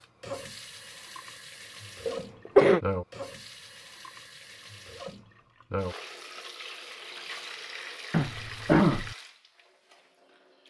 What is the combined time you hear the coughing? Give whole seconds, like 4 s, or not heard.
2 s.